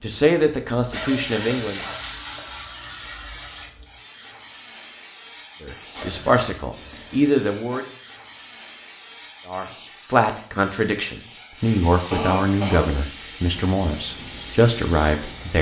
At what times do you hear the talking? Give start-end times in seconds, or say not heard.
0.0-1.8, 5.6-7.8, 9.4-15.5.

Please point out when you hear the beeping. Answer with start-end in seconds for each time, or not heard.
not heard.